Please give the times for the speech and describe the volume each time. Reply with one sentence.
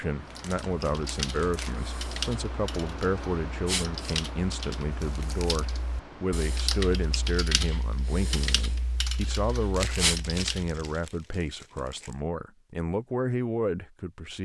The speech can be heard from 0.0 to 14.4 s, at a steady volume.